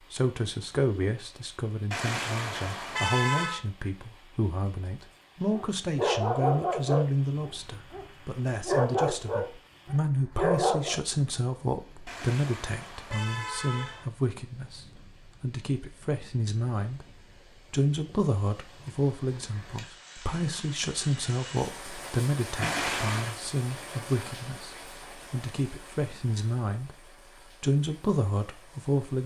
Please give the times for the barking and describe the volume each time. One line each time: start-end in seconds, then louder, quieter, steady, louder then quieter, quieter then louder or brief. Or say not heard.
5.5-11.0 quieter then louder.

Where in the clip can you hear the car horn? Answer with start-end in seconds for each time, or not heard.
1.9-3.6, 12.1-14.1, 22.6-23.4.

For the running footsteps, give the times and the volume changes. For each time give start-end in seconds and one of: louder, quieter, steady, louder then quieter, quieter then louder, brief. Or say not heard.
not heard.